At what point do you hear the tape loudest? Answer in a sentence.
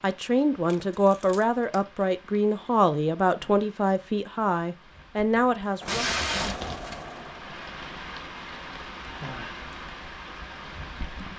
The loudest moment of the tape is at 6 seconds.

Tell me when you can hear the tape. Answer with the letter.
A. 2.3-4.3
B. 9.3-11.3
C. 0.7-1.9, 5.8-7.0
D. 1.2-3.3
C.